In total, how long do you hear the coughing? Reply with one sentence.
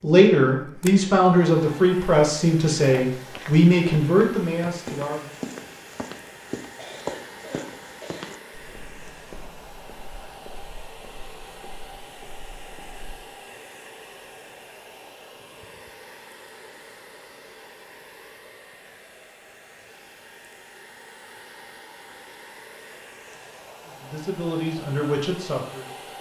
You can hear the coughing for 2 seconds altogether.